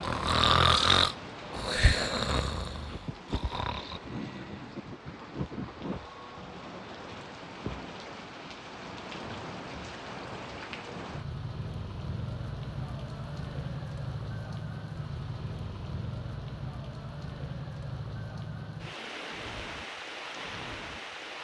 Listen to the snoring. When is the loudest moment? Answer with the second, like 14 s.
1 s.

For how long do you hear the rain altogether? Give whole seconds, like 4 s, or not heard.
21 s.